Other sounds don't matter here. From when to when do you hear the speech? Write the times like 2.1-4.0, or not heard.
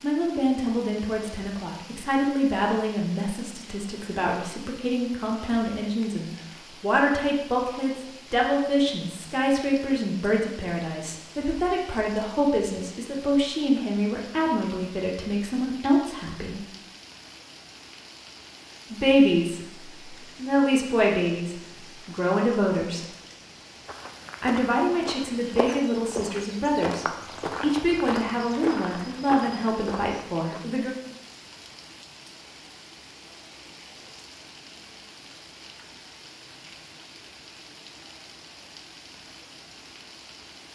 0.0-16.6, 18.9-23.1, 24.4-30.9.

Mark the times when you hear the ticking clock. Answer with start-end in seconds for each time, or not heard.
not heard.